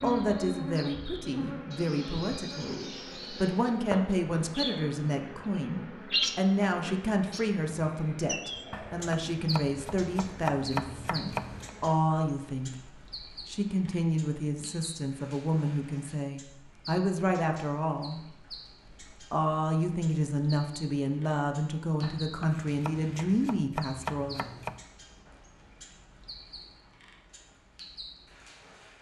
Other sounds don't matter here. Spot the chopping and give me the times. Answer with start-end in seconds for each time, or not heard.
8.7-11.7, 22.0-24.9.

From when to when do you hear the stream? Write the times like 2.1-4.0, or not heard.
not heard.